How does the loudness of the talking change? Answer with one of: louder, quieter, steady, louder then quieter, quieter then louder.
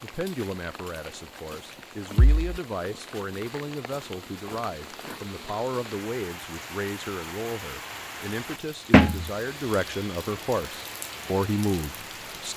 louder.